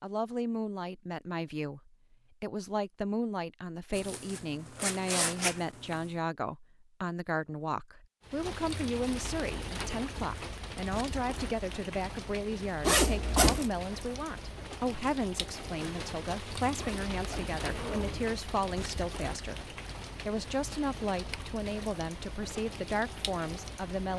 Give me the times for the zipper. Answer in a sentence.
You can hear the zipper from 3.9 to 6.0 s, from 12.8 to 13.7 s and from 16.8 to 18.3 s.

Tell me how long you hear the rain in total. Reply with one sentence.
The rain can be heard for 16 seconds in total.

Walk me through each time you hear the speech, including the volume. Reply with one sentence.
The speech can be heard from 0.0 to 24.1 s, at a steady volume.